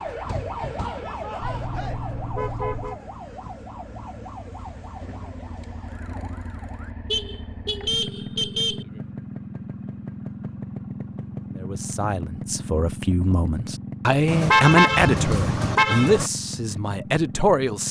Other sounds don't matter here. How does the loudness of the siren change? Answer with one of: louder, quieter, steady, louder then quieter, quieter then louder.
quieter.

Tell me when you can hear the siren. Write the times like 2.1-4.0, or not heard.
0.0-6.9.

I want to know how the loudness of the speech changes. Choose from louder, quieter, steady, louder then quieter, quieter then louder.
louder then quieter.